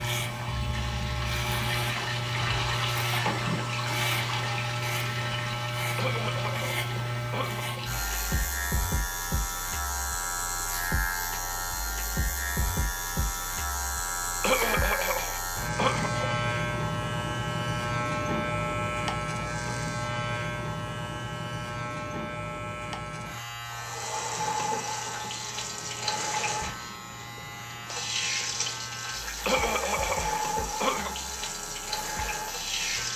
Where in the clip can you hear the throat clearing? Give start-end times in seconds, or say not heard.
6.0-7.8, 14.4-16.4, 29.4-31.1.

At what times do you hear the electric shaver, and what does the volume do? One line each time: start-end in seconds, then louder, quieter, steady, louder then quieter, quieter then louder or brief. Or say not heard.
0.0-33.1 quieter.